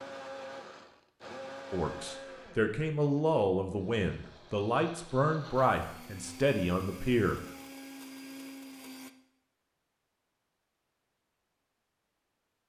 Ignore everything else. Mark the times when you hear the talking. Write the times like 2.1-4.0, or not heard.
1.7-7.4.